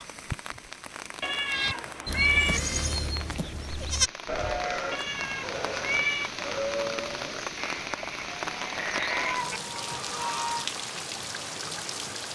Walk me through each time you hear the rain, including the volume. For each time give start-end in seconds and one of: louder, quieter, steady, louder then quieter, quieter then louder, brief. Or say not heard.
0.0-12.2 louder.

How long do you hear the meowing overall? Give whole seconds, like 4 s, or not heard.
4 s.